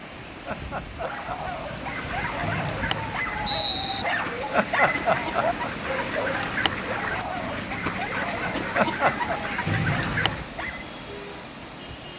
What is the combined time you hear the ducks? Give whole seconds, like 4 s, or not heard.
9 s.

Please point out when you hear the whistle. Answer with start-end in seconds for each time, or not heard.
2.4-4.0, 9.7-10.5.